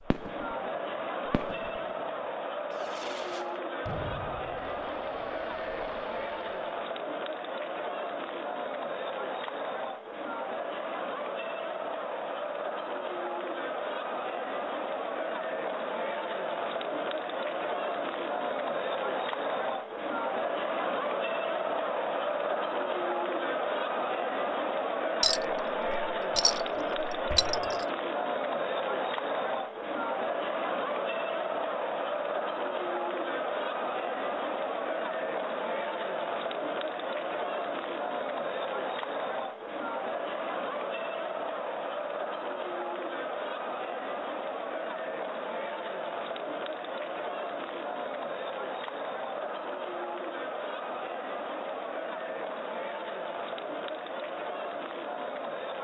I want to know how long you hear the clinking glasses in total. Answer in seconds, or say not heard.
3 s.